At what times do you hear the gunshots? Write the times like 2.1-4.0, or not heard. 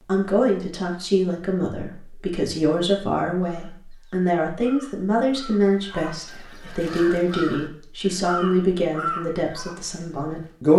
not heard.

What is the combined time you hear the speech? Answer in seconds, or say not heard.
11 s.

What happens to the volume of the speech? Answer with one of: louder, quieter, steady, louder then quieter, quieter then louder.
steady.